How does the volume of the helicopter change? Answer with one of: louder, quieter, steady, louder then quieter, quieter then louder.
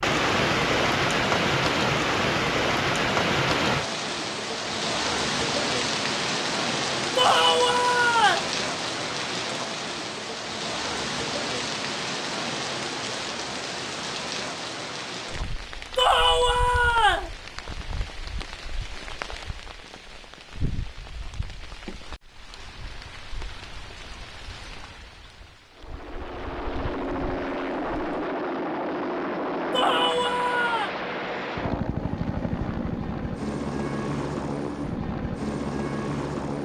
steady.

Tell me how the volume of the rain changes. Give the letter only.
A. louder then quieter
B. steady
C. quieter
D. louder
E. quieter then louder
C.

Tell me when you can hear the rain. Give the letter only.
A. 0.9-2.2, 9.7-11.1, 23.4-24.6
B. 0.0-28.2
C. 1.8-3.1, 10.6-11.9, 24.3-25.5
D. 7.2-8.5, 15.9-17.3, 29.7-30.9
B.